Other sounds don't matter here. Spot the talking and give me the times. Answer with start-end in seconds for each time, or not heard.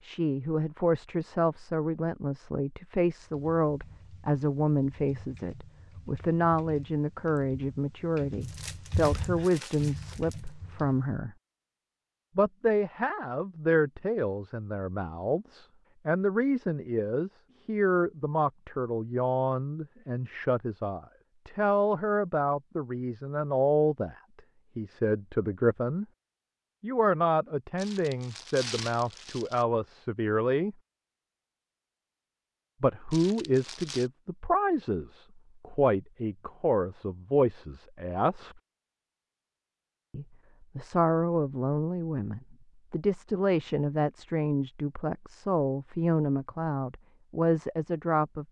0.0-11.3, 12.3-24.1, 24.8-26.1, 26.8-30.8, 32.8-38.5, 40.1-48.4.